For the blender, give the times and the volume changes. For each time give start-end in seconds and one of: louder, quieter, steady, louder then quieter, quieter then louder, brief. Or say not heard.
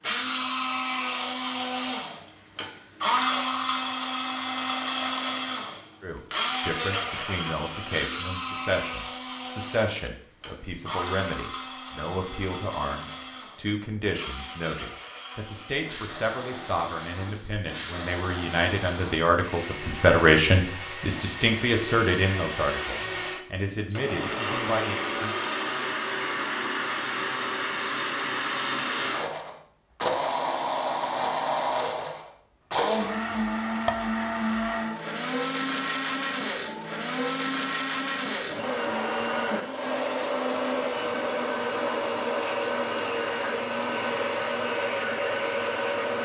0.0-46.1 quieter then louder.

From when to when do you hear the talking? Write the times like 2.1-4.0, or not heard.
6.0-25.4.